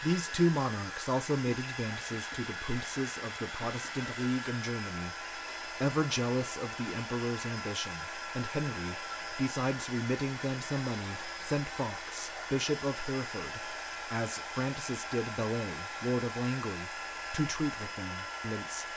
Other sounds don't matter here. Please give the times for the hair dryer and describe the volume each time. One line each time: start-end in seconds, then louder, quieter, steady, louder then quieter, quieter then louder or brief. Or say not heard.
0.0-18.9 steady.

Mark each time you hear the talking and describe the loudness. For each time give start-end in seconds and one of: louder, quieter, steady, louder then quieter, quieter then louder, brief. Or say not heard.
0.0-18.9 steady.